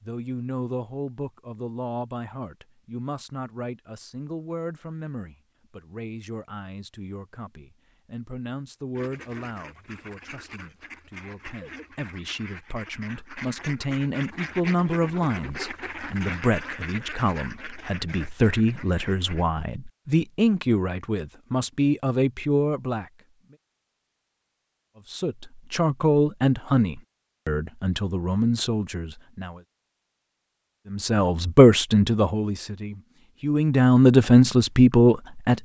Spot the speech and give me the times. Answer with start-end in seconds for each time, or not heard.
0.0-23.1, 25.1-29.6, 30.9-35.6.